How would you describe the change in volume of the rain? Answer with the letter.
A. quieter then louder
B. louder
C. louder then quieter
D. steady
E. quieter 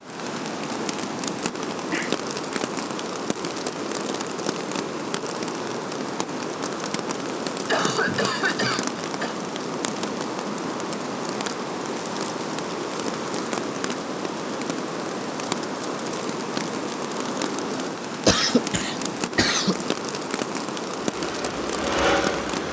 D.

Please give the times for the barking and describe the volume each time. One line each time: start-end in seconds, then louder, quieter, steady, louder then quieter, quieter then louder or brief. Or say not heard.
not heard.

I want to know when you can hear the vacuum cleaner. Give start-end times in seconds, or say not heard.
20.9-22.6.